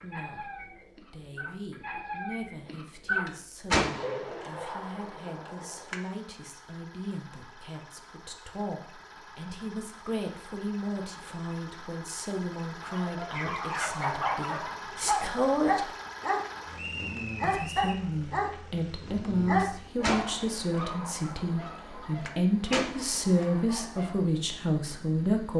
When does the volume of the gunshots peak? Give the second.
4 s.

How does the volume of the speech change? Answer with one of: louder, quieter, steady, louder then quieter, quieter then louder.
louder.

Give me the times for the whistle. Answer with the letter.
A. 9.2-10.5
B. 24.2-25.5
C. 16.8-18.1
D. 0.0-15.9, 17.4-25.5
C.